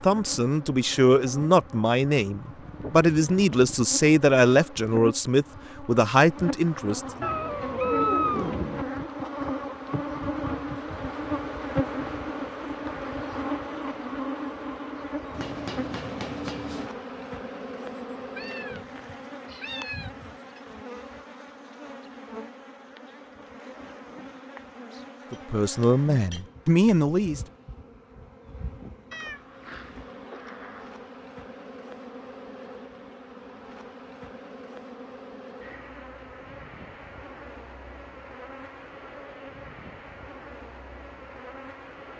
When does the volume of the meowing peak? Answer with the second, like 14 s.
8 s.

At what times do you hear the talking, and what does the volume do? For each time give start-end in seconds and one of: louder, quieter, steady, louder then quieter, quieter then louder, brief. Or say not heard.
0.0-7.2 steady
25.3-27.4 brief.